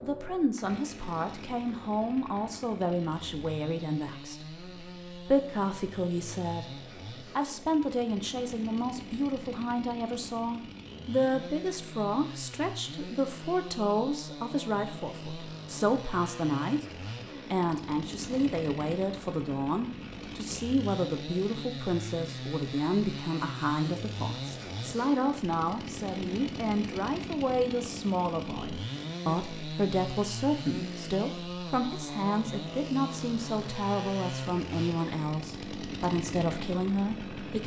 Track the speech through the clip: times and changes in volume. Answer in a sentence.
You can hear the speech from 0.0 to 37.6 s, at a steady volume.